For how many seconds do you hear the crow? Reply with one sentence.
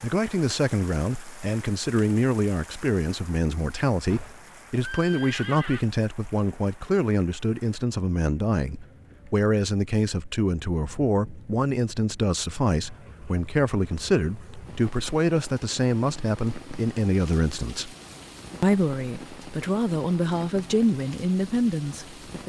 You can't hear the crow here.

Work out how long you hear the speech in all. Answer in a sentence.
The speech can be heard for 22 seconds in total.